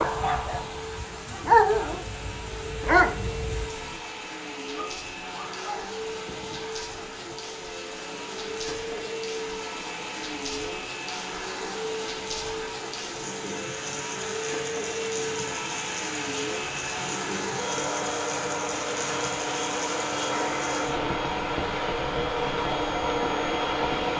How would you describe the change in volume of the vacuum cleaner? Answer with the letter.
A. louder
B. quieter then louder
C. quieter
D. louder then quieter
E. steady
A.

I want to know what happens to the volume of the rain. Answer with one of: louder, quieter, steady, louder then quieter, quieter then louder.
louder.